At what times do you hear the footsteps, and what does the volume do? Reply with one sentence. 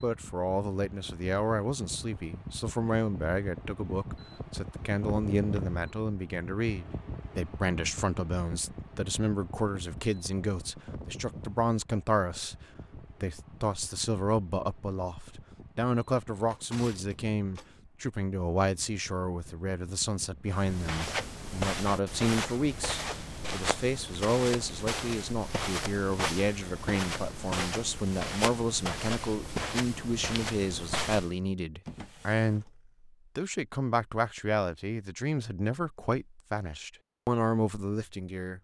The footsteps can be heard from 20.4 to 31.4 s, at a steady volume.